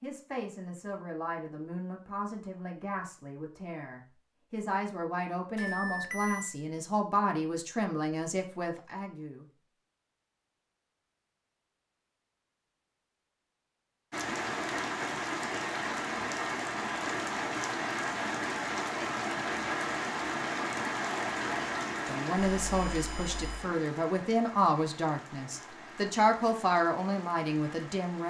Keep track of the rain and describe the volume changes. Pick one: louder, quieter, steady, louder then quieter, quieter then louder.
quieter.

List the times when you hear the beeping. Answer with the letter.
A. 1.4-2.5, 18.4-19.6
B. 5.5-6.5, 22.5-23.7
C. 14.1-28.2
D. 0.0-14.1
B.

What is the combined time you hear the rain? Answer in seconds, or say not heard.
14 s.